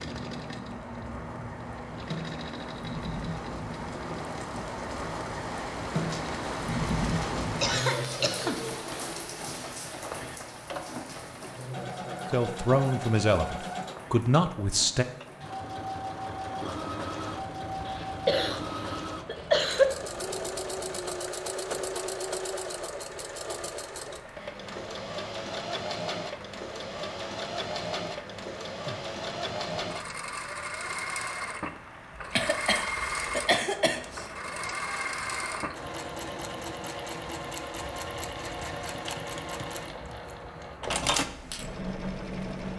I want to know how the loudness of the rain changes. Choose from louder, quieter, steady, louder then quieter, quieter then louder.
quieter.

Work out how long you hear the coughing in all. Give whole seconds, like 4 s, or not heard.
5 s.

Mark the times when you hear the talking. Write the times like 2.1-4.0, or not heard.
12.3-15.1.